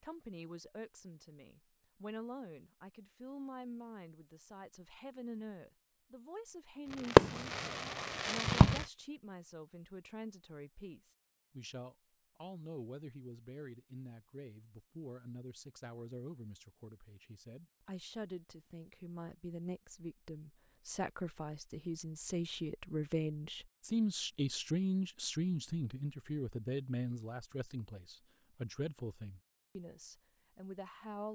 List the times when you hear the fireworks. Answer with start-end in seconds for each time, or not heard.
7.1-8.8.